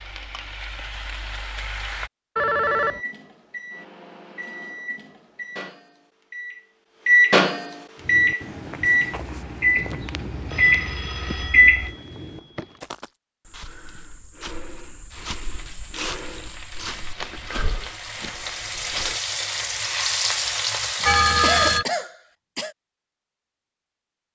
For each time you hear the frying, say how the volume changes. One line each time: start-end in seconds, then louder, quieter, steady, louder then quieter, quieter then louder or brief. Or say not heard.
0.0-2.1 brief
15.1-21.8 louder.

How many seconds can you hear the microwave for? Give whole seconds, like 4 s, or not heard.
9 s.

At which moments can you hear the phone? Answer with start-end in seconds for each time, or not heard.
2.4-3.0, 10.1-12.8, 21.1-21.9.